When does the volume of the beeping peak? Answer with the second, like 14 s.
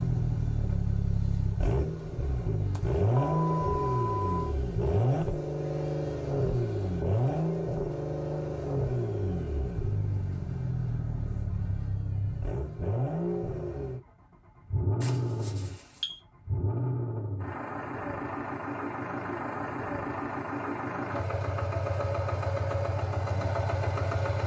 4 s.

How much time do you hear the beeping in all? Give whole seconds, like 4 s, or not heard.
3 s.